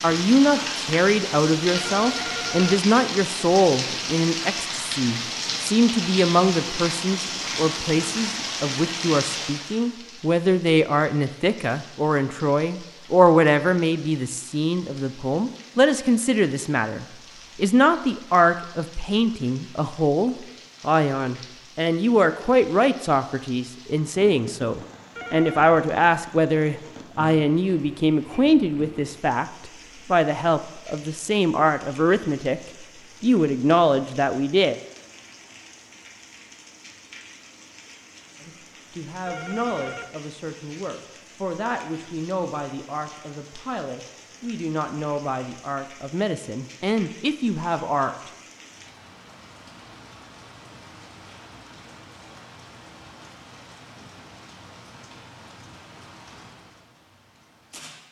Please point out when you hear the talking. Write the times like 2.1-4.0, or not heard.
0.0-29.4, 30.1-32.6, 33.2-34.8, 38.4-48.3.